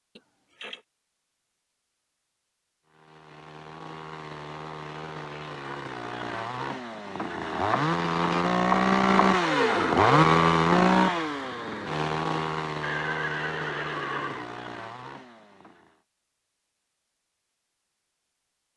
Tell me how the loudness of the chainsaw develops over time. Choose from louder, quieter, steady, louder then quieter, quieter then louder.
louder then quieter.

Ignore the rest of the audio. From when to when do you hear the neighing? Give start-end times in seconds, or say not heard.
0.1-0.8, 12.8-14.5.